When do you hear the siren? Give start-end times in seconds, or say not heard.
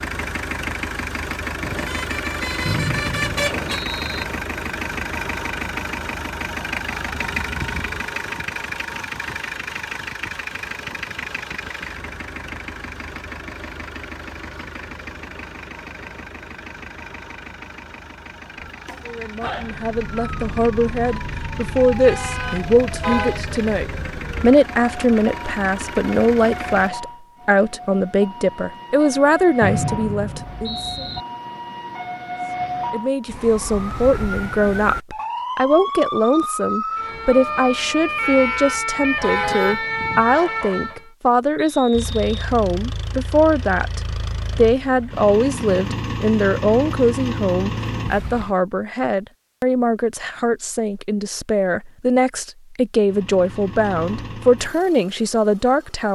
18.6-41.0.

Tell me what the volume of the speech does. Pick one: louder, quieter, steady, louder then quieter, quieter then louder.
steady.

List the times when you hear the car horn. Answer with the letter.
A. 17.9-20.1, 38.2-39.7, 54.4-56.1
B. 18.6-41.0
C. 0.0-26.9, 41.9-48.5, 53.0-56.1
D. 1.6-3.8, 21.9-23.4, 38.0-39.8
D.